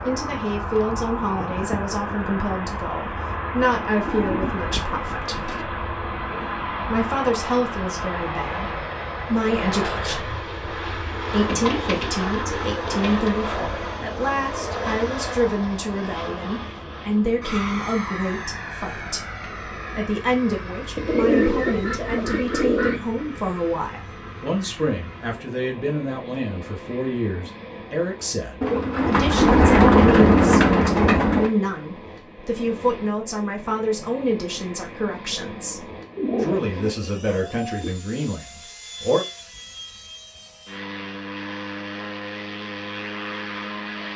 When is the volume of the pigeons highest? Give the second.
30 s.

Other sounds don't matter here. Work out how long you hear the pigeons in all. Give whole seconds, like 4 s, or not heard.
10 s.